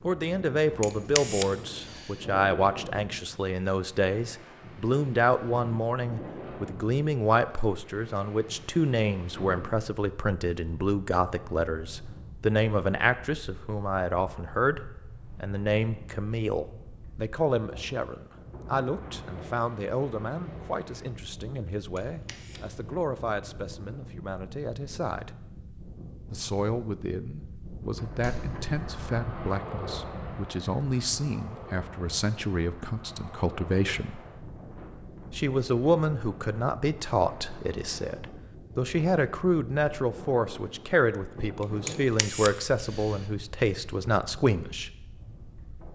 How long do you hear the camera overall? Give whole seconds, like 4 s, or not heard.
4 s.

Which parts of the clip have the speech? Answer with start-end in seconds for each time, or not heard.
0.0-25.4, 26.3-34.2, 35.3-44.9.